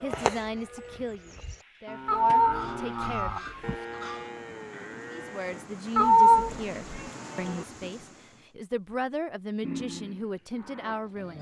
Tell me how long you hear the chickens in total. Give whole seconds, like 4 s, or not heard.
2 s.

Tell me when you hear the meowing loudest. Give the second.
6 s.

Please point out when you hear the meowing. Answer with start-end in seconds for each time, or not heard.
2.0-3.8, 6.0-7.0.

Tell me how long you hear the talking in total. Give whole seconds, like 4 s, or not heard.
10 s.